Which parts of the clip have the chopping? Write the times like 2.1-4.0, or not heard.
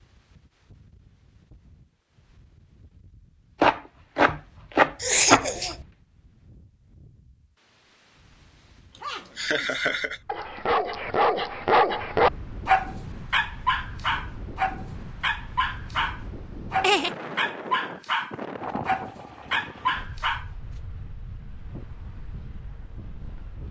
3.6-5.8.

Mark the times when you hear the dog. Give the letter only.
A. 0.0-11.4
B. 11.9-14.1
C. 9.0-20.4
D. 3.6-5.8
C.